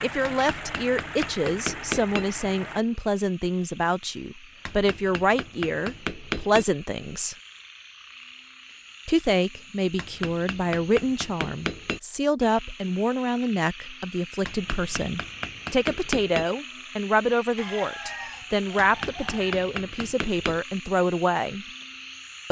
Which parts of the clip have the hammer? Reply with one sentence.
You can hear the hammer from 0.2 to 2.2 s, from 4.7 to 6.7 s, from 9.9 to 12.0 s, from 14.4 to 16.4 s and from 18.8 to 20.6 s.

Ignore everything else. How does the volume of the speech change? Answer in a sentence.
The volume of the speech stays about the same.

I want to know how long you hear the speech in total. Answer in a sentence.
You can hear the speech for 20 seconds altogether.